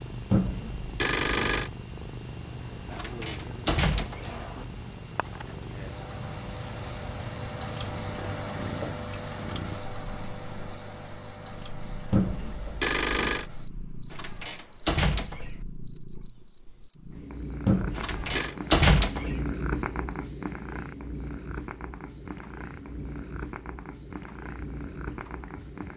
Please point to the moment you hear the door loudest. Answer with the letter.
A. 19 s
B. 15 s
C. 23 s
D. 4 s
A.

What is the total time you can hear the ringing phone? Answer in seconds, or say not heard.
4 s.